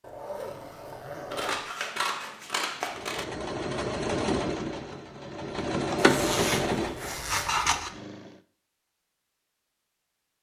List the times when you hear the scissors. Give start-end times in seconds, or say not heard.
1.3-3.2, 7.3-7.9.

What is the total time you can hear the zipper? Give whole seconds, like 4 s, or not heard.
3 s.